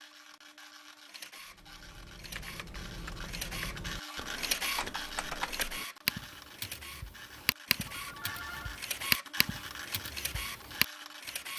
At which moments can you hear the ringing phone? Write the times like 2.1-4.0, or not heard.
7.8-8.8.